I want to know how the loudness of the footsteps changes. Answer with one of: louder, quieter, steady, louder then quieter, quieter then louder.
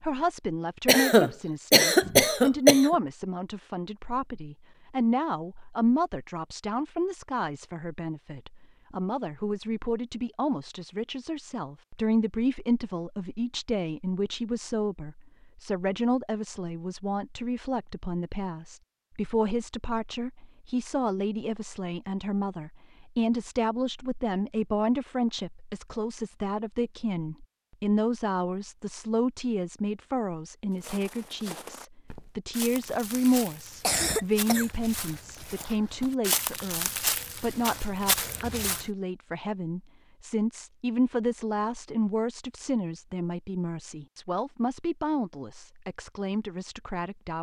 louder.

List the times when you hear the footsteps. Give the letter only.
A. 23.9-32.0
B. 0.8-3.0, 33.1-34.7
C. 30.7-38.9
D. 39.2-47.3
C.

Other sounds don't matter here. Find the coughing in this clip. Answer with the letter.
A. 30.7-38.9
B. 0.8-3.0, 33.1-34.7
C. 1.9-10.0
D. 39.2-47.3
B.